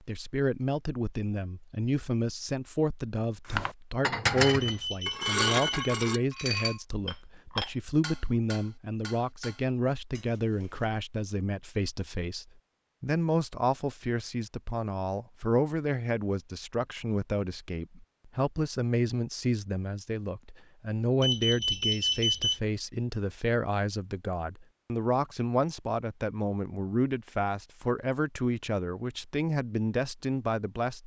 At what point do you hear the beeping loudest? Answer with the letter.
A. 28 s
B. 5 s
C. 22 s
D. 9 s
C.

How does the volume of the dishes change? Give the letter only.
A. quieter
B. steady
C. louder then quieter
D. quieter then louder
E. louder
A.